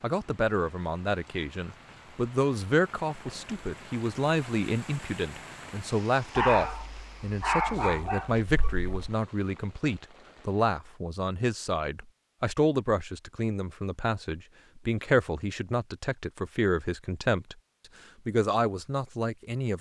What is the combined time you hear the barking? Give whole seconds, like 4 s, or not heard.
3 s.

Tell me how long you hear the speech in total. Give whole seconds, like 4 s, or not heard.
19 s.